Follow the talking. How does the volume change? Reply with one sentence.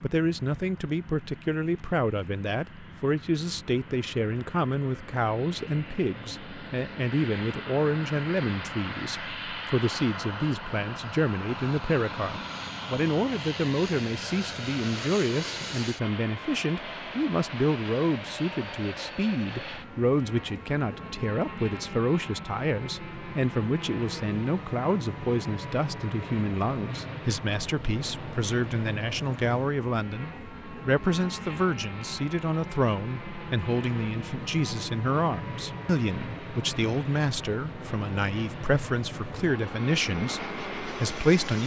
The loudness of the talking stays about the same.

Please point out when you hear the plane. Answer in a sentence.
The plane can be heard from 0.0 to 41.6 s.